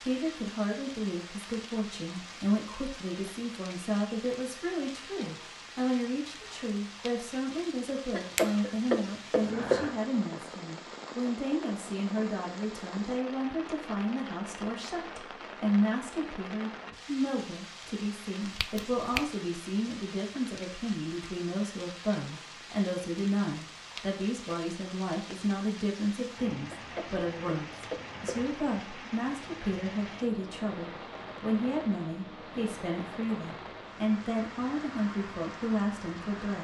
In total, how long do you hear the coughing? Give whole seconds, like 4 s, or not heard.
4 s.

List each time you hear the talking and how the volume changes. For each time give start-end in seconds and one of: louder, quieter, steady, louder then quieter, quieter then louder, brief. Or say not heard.
0.0-36.5 steady.